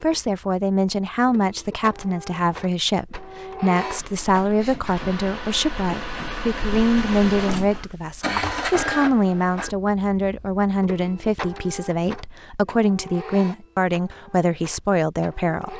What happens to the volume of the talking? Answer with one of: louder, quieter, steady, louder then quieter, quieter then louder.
steady.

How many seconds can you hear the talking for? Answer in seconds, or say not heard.
16 s.